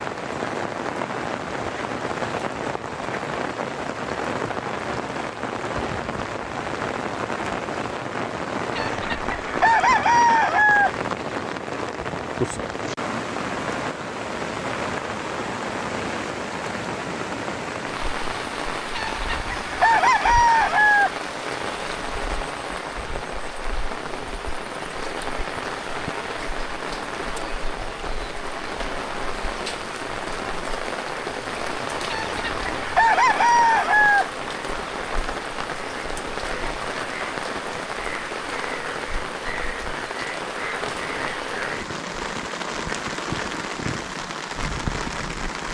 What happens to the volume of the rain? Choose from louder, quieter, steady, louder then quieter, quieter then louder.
steady.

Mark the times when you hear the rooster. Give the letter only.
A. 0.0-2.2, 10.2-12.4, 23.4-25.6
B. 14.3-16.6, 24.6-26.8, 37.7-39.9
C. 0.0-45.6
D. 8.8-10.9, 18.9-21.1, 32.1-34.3
D.